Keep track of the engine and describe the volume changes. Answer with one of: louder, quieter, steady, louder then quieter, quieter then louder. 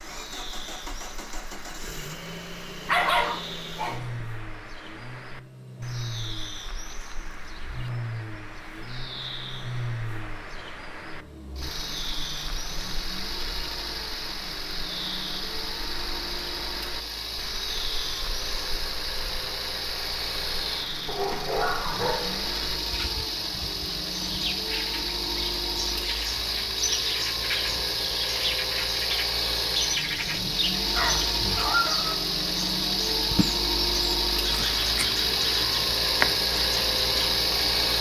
louder.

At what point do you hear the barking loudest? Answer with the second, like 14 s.
3 s.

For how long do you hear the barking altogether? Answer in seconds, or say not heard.
4 s.